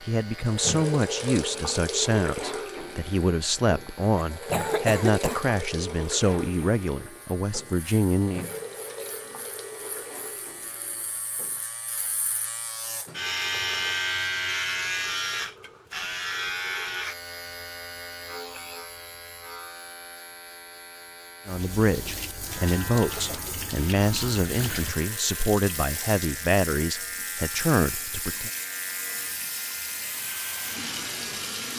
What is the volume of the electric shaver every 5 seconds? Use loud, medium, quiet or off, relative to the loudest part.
quiet, quiet, loud, loud, medium, medium, medium.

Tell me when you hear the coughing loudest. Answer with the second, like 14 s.
5 s.